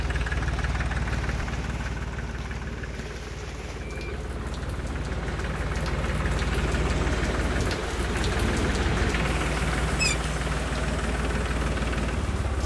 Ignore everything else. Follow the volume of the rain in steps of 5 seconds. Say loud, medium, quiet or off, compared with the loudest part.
medium, loud, loud.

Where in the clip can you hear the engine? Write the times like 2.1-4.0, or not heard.
0.0-12.6.